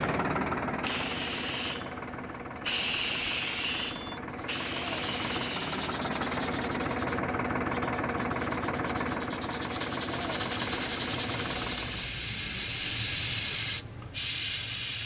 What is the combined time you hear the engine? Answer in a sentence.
You can hear the engine for 12 seconds altogether.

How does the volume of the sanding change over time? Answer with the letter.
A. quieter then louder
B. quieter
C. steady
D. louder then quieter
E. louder
A.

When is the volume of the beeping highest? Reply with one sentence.
The volume of the beeping peaks at 4 seconds.